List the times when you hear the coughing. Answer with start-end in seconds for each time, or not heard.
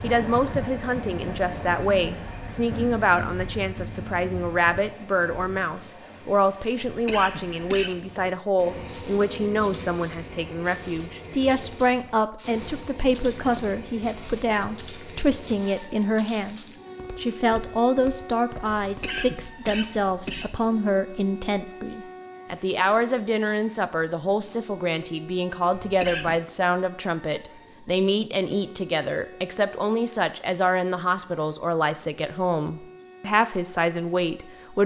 6.8-8.0, 18.8-20.6, 25.8-26.4.